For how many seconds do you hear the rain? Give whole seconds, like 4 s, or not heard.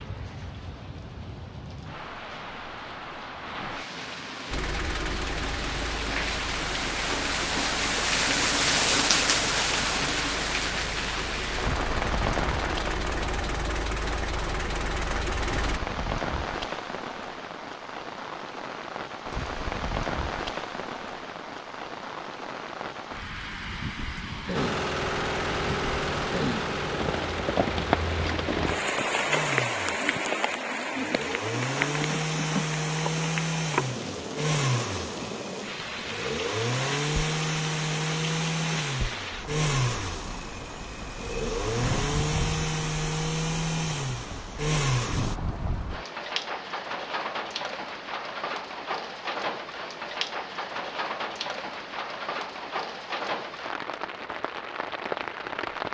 56 s.